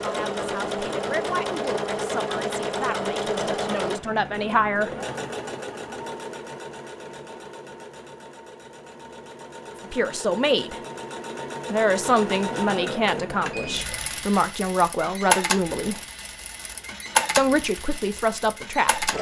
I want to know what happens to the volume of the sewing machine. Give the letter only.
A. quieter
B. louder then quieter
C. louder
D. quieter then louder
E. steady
D.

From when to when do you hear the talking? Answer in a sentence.
You can hear the talking from 0.0 to 4.9 s, from 9.9 to 10.8 s, from 11.7 to 16.0 s and from 17.4 to 19.1 s.